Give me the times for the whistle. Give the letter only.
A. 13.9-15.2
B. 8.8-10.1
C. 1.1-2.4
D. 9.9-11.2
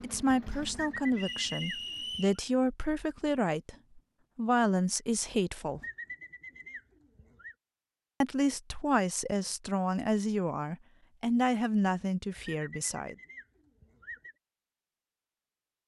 C.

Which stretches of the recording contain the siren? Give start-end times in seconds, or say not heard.
not heard.